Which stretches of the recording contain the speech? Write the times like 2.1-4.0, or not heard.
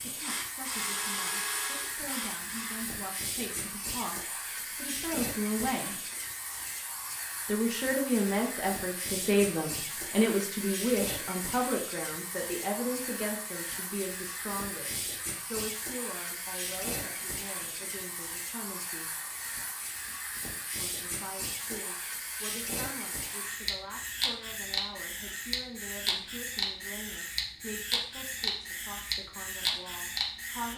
0.0-6.0, 7.5-19.1, 20.8-30.7.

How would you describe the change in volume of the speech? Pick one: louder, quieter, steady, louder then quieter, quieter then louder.
louder then quieter.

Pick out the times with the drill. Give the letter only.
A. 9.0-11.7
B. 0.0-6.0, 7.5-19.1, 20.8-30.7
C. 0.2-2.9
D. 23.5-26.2
C.